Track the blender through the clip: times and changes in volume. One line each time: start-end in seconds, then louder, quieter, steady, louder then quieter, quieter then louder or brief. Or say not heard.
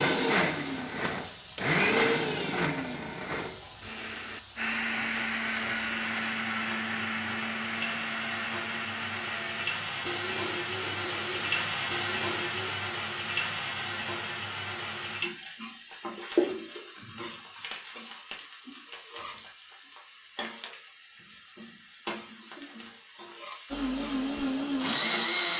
0.0-12.8 quieter
23.7-25.5 brief.